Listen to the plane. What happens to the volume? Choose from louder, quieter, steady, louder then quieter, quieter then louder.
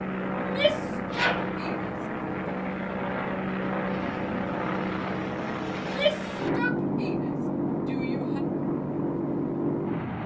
steady.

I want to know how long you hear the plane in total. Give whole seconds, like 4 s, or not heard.
10 s.